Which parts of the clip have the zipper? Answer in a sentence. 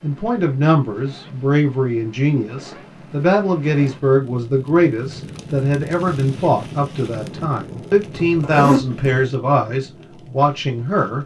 You can hear the zipper from 8.1 to 9.2 s.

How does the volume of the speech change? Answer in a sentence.
The volume of the speech stays about the same.